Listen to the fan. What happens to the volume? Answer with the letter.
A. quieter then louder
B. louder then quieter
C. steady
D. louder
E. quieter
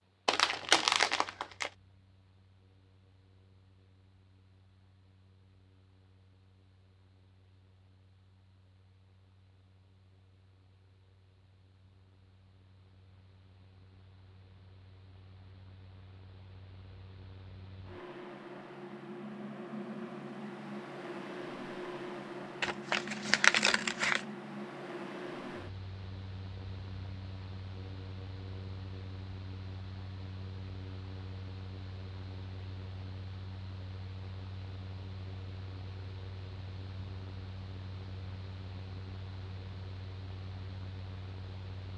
B.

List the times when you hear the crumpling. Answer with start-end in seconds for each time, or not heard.
0.2-1.7, 22.6-24.2.